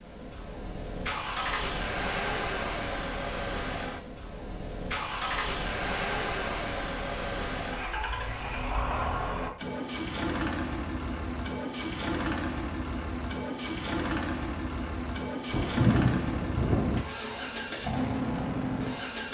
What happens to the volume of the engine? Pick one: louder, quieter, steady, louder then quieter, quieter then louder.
steady.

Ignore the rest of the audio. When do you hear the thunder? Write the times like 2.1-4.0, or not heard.
15.5-17.0.